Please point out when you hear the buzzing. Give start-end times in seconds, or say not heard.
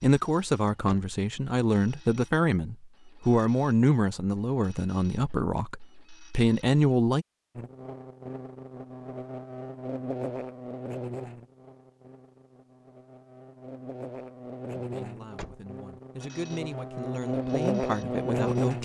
7.5-18.8.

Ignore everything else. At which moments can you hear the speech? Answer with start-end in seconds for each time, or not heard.
0.0-7.2, 14.8-18.8.